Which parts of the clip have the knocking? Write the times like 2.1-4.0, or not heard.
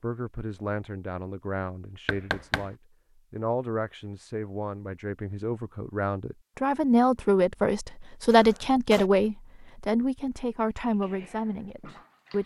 2.0-2.7.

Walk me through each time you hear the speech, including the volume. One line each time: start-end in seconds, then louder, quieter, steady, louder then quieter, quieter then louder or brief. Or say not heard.
0.0-12.4 louder then quieter.